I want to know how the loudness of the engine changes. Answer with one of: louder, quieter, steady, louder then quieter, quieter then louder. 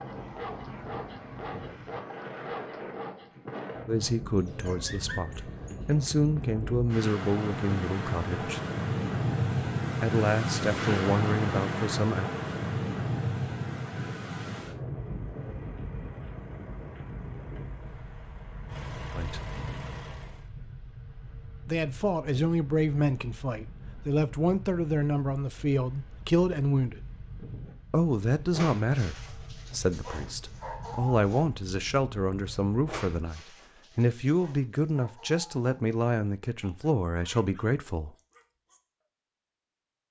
louder.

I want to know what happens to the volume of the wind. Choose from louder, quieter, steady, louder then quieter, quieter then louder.
louder then quieter.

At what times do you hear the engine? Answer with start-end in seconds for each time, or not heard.
14.8-20.5.